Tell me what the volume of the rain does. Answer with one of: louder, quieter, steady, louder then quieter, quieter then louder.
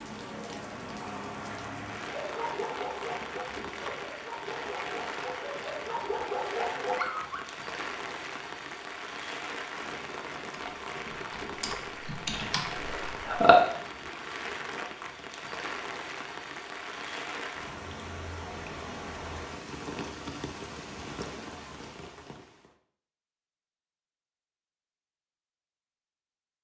steady.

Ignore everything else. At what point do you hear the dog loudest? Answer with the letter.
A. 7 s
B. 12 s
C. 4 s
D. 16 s
A.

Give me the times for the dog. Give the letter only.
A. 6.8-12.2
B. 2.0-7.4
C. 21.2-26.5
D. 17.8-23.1
B.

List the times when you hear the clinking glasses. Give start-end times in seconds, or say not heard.
not heard.